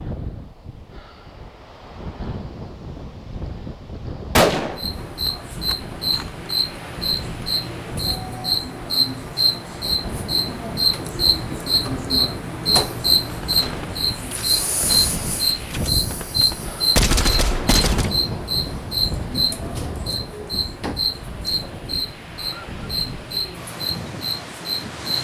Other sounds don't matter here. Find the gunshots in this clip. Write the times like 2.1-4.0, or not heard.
4.3-6.2, 13.3-18.1.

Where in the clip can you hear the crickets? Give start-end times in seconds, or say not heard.
4.8-25.1.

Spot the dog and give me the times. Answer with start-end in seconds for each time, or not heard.
not heard.